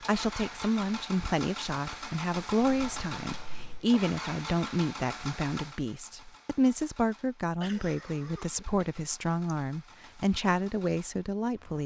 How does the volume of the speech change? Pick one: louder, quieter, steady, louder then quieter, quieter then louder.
steady.